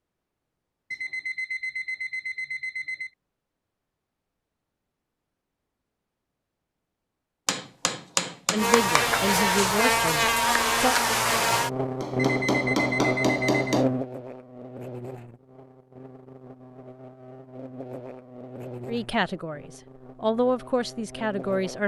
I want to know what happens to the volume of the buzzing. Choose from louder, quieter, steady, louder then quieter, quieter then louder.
quieter.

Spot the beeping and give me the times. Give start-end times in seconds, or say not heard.
0.9-3.1, 12.2-13.8.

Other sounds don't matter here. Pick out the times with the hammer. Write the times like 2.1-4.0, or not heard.
7.5-9.2, 12.0-13.8.